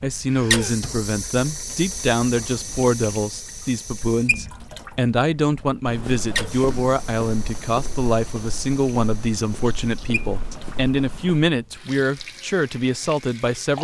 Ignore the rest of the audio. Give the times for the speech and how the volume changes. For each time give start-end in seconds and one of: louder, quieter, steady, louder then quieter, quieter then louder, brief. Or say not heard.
0.0-13.7 steady.